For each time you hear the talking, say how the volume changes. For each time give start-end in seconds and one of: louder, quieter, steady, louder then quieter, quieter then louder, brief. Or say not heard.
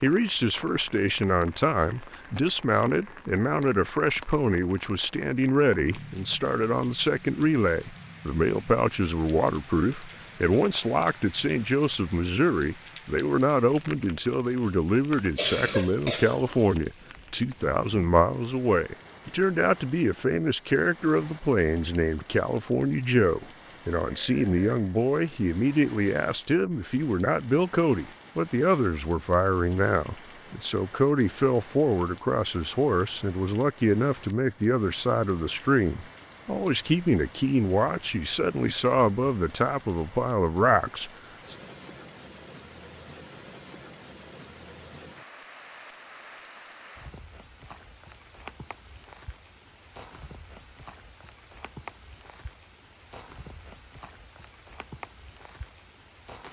0.0-41.5 steady.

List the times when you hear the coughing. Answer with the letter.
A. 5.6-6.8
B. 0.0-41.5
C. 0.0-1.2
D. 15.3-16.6
D.